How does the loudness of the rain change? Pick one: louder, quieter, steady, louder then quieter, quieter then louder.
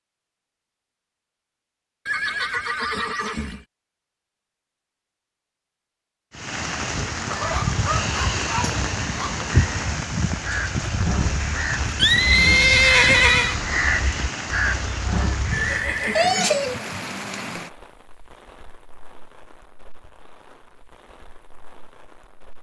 quieter.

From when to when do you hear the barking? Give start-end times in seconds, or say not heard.
7.3-9.3.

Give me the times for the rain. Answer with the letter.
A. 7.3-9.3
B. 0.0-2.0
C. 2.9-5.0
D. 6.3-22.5
D.